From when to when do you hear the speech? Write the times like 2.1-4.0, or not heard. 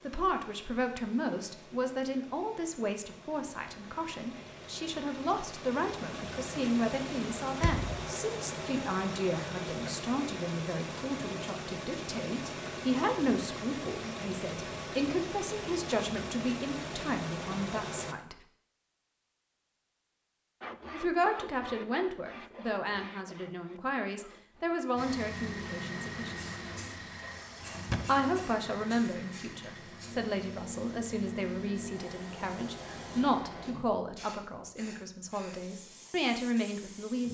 0.0-18.4, 20.9-26.4, 28.1-37.2.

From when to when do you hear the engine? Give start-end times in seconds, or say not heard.
0.0-18.1, 24.9-33.5.